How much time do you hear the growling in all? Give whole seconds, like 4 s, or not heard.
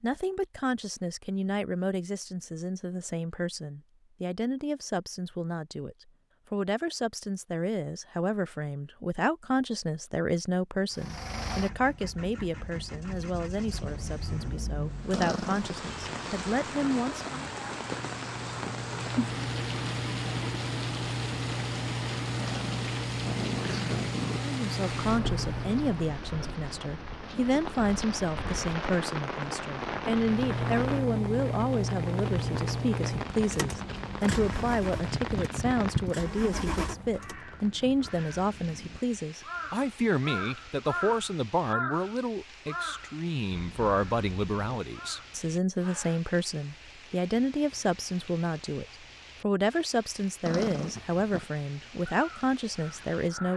4 s.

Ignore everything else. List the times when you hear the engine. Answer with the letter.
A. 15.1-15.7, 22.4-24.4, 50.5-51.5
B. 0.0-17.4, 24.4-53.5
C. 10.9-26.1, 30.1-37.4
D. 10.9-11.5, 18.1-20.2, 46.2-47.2
C.